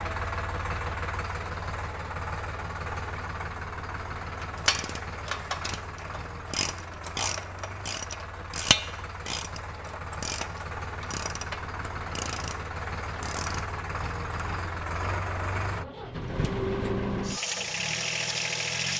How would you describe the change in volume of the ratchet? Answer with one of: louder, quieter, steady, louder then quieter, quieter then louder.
louder then quieter.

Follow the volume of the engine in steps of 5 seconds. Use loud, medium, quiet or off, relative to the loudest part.
medium, medium, medium, loud.